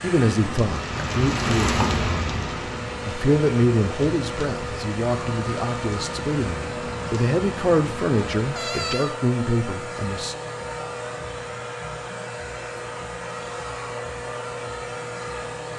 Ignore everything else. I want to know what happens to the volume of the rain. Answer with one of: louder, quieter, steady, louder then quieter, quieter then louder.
quieter.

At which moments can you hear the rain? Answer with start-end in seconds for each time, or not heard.
0.2-8.6.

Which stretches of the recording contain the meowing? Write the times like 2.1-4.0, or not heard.
8.6-9.2.